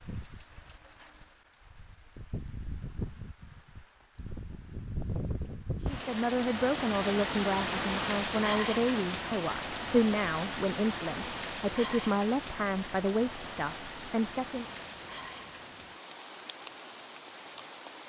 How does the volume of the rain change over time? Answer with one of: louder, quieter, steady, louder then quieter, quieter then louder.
louder then quieter.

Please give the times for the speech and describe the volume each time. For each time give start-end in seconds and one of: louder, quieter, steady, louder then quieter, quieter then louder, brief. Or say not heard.
5.8-14.7 steady.